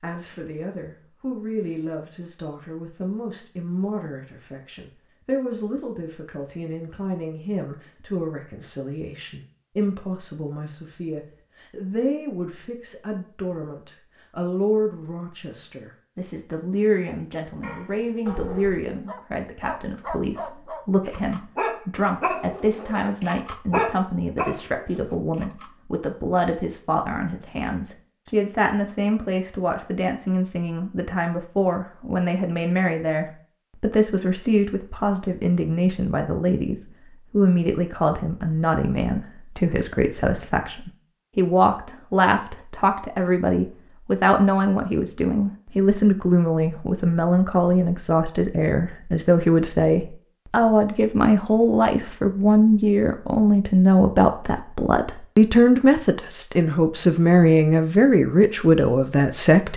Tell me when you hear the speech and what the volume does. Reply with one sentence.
The speech can be heard from 0.0 to 59.7 s, getting louder.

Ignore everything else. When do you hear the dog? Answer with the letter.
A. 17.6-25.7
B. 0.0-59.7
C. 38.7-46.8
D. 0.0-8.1
A.